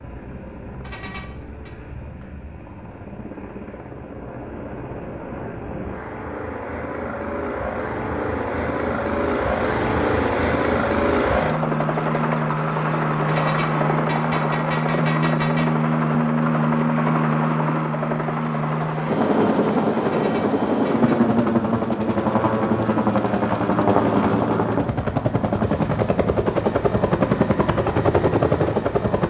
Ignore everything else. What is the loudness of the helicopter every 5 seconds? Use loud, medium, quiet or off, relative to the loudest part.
quiet, medium, loud, loud, loud, loud.